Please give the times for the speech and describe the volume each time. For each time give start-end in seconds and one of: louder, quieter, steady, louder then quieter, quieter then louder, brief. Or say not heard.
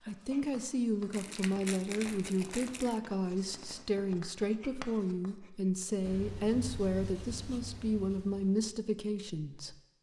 0.1-9.8 steady.